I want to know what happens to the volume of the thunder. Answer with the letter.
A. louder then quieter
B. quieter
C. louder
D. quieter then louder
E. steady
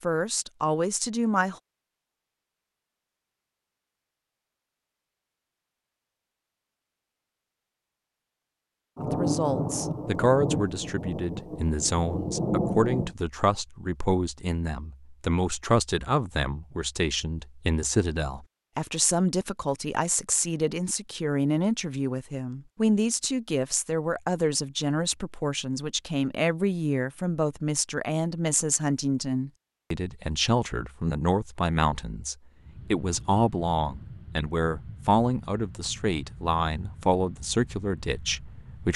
D.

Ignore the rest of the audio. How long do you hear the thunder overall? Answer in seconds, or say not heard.
4 s.